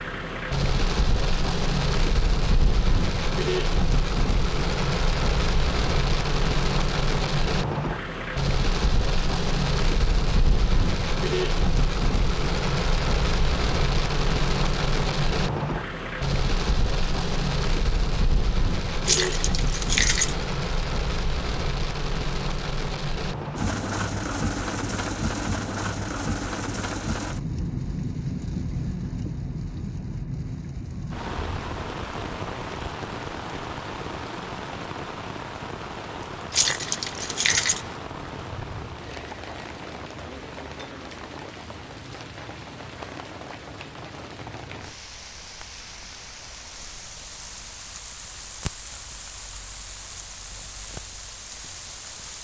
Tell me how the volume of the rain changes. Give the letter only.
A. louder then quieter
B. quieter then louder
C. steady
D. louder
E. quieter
E.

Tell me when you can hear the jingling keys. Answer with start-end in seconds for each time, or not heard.
19.1-20.4, 36.5-37.9.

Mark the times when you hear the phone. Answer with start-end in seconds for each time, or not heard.
not heard.